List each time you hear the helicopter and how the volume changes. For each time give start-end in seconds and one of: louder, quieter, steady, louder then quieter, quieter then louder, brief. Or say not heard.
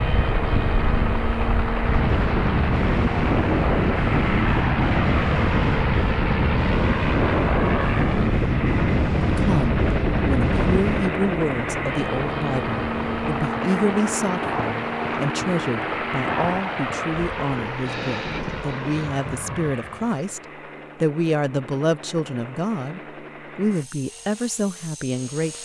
0.0-25.6 quieter.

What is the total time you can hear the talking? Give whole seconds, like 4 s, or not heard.
16 s.